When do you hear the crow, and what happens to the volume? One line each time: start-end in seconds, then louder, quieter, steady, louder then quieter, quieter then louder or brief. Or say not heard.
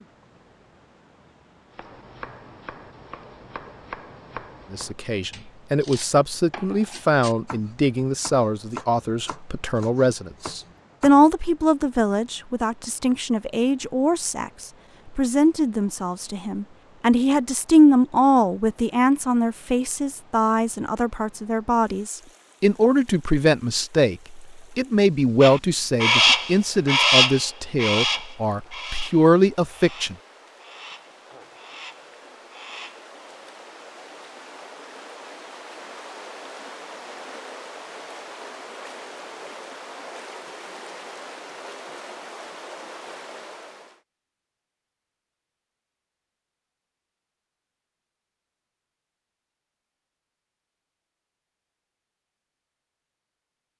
25.4-33.0 quieter.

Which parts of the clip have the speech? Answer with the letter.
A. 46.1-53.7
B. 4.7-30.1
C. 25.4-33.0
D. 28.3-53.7
B.